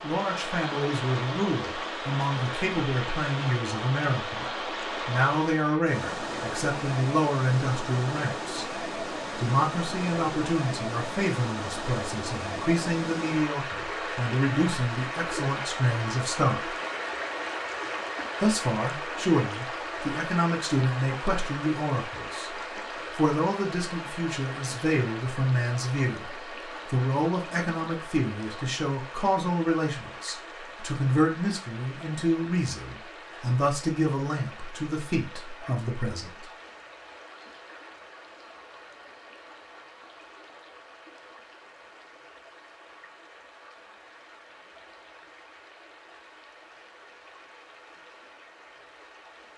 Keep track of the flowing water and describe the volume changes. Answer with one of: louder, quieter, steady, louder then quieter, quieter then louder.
quieter.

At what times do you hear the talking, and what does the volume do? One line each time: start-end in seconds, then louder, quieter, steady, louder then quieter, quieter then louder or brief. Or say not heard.
0.0-16.8 steady
18.4-36.5 steady.